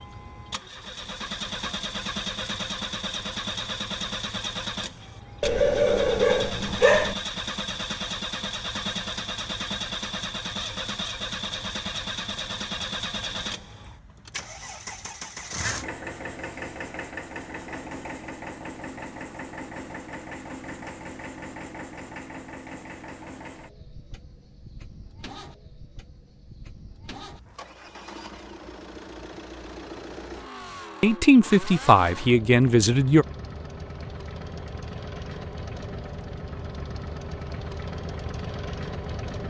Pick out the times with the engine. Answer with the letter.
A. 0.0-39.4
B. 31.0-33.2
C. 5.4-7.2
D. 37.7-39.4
A.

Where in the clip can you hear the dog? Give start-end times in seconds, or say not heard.
5.4-7.2.